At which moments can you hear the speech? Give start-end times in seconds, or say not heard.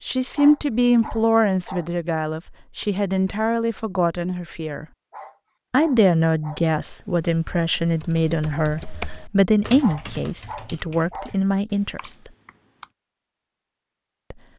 0.0-4.8, 5.7-12.3.